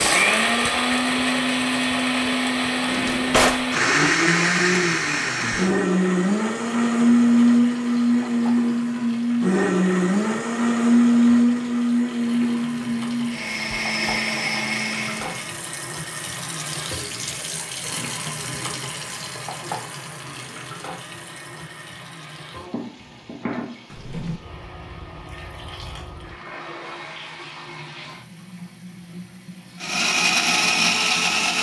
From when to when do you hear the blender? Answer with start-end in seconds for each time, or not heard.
0.0-15.6, 29.8-31.5.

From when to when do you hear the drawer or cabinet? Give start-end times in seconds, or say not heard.
2.9-3.6, 23.9-24.4.